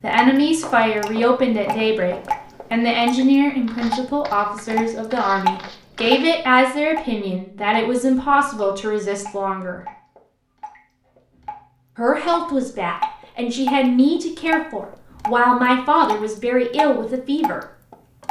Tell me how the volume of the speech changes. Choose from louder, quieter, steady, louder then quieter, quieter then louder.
steady.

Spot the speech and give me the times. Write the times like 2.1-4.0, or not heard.
0.0-9.8, 11.9-17.6.